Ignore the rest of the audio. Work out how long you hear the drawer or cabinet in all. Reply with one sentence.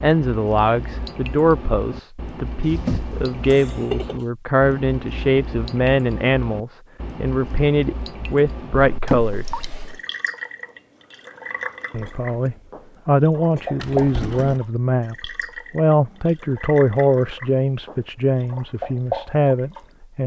The drawer or cabinet can be heard for 3 seconds in total.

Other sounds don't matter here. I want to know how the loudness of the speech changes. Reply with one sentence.
The loudness of the speech stays about the same.